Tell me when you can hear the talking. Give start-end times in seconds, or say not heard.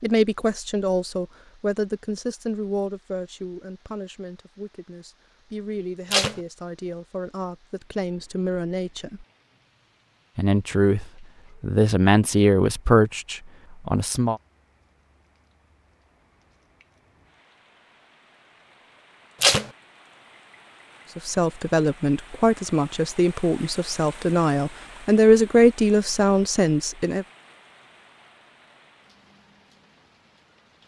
0.0-9.2, 10.3-14.4, 21.1-27.2.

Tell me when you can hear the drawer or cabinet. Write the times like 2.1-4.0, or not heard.
not heard.